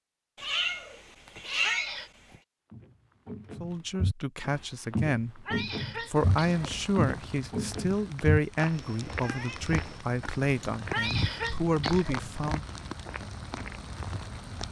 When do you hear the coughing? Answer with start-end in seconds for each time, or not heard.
1.6-2.1, 5.5-6.8, 10.9-12.2.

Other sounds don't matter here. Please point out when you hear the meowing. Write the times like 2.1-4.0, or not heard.
0.3-2.4, 8.7-9.8.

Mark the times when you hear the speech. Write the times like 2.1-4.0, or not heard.
3.6-12.7.